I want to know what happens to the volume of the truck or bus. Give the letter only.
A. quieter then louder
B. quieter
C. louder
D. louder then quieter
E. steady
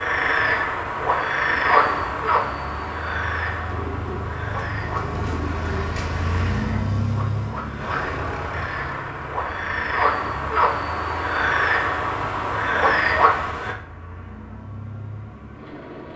D.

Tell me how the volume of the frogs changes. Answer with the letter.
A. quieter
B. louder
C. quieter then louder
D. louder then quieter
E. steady
C.